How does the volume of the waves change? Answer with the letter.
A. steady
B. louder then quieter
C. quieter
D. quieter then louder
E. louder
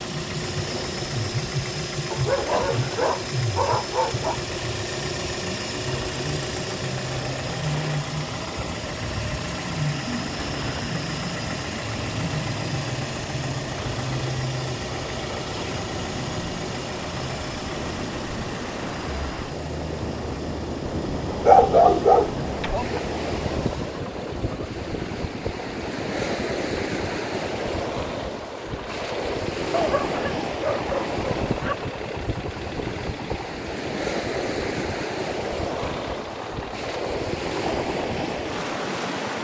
E.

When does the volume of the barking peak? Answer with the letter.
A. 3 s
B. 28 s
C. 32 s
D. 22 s
D.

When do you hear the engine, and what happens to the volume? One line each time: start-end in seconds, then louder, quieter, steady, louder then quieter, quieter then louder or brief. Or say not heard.
0.0-39.3 quieter.